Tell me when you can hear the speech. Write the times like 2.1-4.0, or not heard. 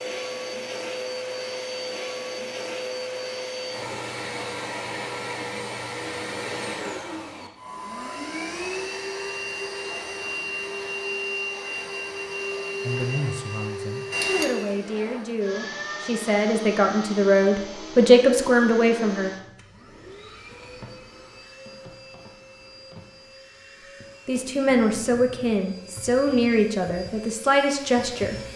12.8-19.3, 24.2-28.4.